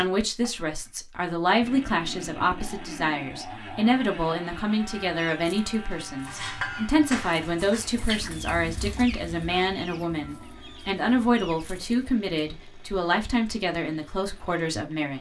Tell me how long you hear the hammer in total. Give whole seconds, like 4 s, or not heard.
2 s.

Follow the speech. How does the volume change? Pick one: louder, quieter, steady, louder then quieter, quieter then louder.
steady.